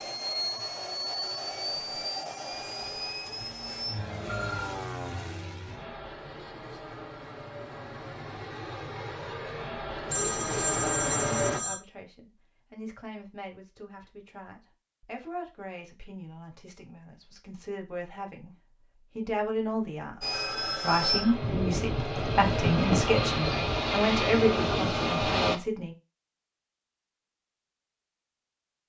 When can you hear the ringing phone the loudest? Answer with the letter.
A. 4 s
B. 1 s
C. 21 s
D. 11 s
D.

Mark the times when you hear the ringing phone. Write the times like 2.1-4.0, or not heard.
3.2-4.8, 10.1-11.8, 20.3-21.4.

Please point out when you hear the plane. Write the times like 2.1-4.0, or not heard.
0.0-11.6, 20.2-25.6.